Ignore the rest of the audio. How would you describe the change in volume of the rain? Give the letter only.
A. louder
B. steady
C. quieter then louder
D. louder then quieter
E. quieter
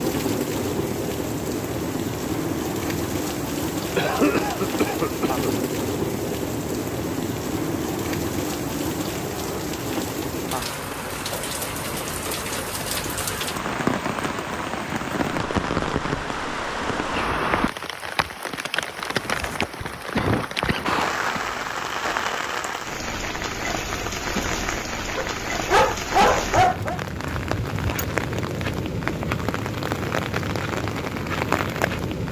B.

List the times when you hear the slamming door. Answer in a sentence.
The slamming door can't be heard in this clip.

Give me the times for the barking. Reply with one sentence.
You can hear the barking from 25.1 to 27.0 s.